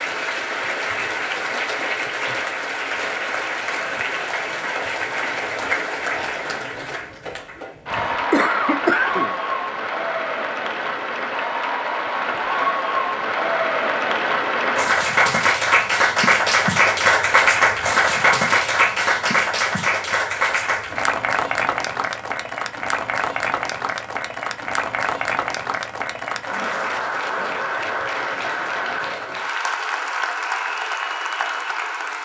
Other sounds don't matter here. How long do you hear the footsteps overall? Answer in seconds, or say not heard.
not heard.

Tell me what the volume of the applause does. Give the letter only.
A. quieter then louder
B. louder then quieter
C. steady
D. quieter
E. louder
B.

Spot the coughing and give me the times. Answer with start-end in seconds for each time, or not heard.
7.9-9.3.